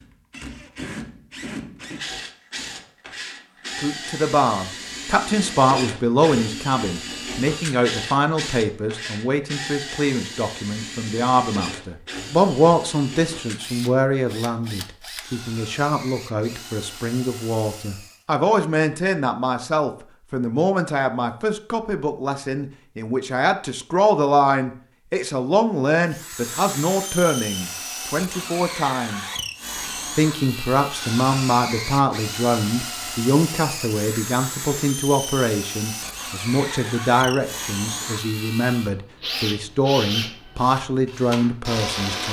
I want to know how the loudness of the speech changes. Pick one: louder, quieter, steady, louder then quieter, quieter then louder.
steady.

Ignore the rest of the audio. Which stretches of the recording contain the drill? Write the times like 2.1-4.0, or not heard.
0.0-18.2, 26.1-42.2.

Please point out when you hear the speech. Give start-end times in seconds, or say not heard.
3.8-29.2, 30.1-42.2.